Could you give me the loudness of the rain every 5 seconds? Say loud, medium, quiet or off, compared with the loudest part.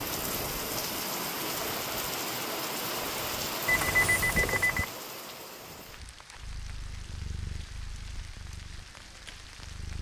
loud, quiet.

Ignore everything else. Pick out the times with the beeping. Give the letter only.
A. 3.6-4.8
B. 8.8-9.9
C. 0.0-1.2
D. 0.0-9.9
A.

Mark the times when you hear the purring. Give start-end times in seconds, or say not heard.
6.3-9.9.